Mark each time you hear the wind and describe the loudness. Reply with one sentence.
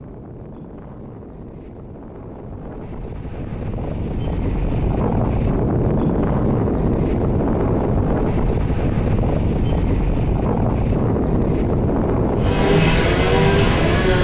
You can hear the wind from 0.0 to 14.1 s, getting louder.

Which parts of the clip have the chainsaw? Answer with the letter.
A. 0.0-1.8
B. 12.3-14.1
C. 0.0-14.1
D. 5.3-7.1
B.